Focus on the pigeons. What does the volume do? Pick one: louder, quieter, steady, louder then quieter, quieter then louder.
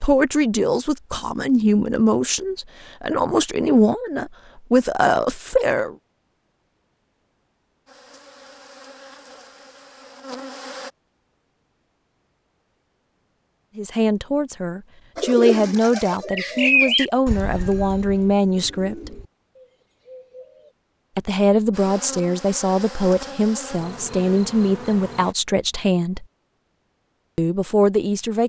louder then quieter.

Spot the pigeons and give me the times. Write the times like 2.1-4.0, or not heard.
15.2-20.7.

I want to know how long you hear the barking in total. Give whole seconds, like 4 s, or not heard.
not heard.